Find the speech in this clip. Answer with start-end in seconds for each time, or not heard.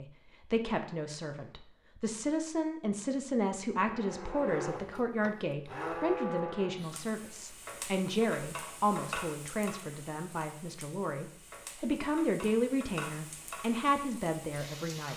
0.0-15.1.